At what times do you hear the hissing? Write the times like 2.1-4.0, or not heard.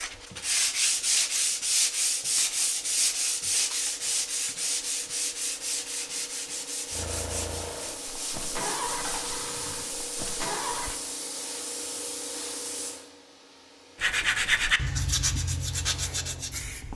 0.0-16.9.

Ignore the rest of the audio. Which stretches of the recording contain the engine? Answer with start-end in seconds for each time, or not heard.
6.9-10.9.